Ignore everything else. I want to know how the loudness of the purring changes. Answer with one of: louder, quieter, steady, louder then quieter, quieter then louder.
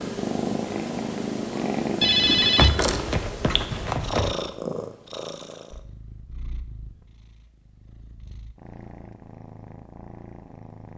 quieter then louder.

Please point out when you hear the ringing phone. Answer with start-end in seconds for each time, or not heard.
2.0-4.3.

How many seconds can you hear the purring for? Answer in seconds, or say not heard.
11 s.